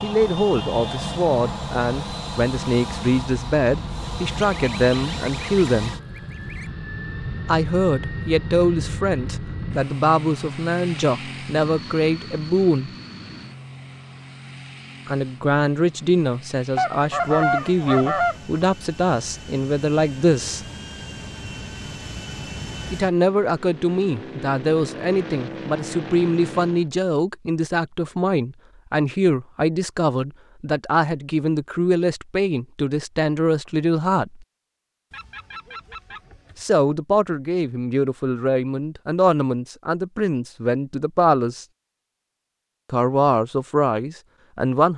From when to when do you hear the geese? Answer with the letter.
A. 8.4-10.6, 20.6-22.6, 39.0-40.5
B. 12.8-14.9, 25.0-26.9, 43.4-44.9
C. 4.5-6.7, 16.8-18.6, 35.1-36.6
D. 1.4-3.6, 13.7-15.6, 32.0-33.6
C.